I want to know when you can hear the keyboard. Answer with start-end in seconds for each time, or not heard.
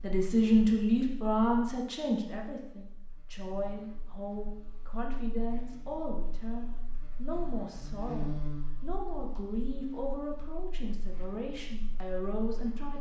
not heard.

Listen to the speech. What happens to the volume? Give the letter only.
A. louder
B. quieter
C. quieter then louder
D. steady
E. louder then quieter
B.